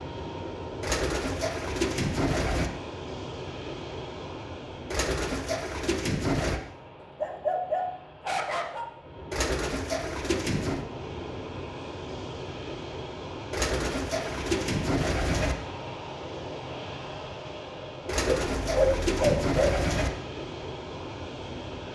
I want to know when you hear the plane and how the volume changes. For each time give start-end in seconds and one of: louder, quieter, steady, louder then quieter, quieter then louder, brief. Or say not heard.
0.0-21.9 quieter then louder.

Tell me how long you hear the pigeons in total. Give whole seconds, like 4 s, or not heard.
9 s.